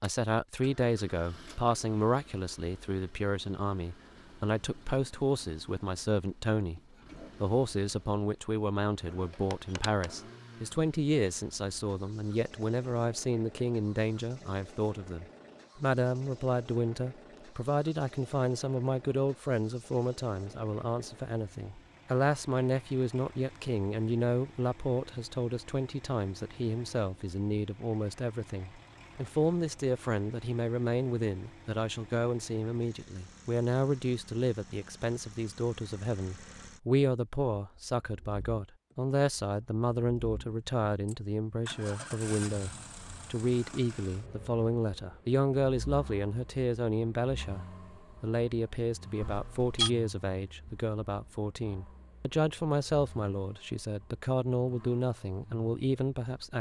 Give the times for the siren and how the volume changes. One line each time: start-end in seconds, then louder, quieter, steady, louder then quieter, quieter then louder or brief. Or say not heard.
not heard.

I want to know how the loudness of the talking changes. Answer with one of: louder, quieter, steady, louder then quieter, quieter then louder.
steady.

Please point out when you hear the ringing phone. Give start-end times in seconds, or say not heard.
9.5-10.1, 49.2-49.9.